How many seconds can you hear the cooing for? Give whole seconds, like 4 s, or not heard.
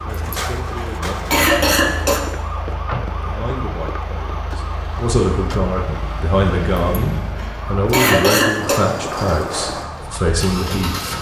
not heard.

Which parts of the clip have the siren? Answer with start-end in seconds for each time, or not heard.
0.0-11.1.